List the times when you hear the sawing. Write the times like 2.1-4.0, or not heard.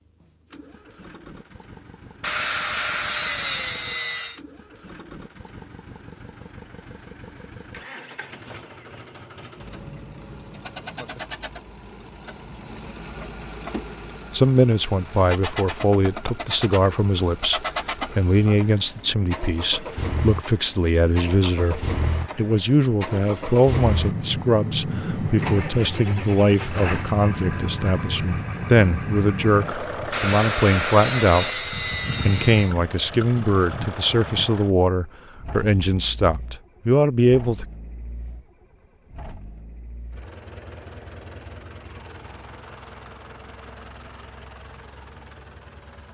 2.2-4.4, 30.1-32.7.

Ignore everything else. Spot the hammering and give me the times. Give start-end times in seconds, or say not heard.
not heard.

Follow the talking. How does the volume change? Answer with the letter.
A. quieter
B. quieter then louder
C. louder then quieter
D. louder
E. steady
E.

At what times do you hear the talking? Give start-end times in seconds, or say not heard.
14.3-31.6, 32.2-37.6.